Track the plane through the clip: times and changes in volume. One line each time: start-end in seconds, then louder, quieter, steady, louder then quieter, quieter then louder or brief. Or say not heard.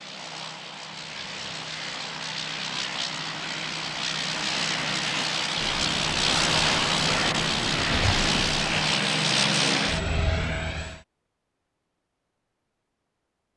0.0-11.0 louder.